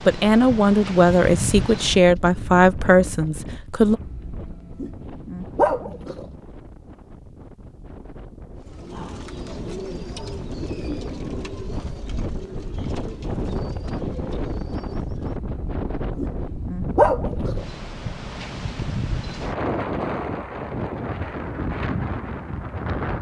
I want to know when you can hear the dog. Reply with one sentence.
You can hear the dog from 4.0 to 6.3 s and from 15.3 to 17.8 s.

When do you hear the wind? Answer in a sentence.
You can hear the wind from 0.0 to 23.1 s.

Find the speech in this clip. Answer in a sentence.
The speech can be heard from 0.1 to 4.0 s.